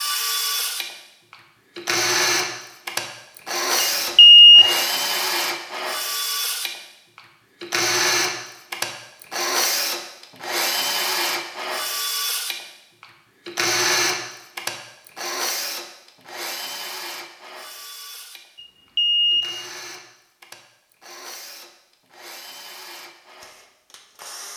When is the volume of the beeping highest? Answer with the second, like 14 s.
4 s.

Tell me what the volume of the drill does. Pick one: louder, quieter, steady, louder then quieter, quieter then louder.
quieter.